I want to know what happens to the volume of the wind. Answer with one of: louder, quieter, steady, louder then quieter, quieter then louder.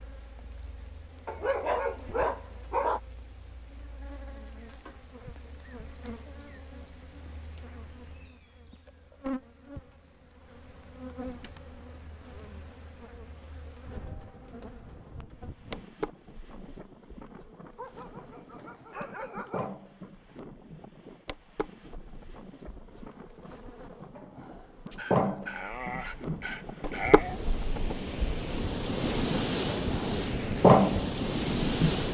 louder.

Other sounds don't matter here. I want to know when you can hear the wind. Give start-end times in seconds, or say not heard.
13.8-32.0.